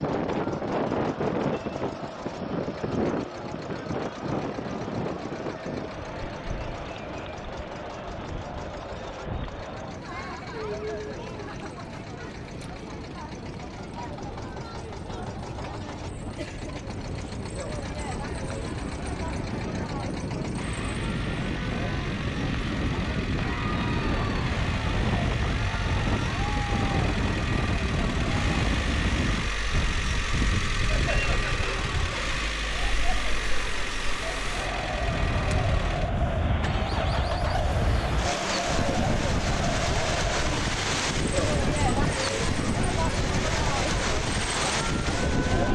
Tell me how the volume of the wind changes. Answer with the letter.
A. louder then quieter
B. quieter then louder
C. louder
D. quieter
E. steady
B.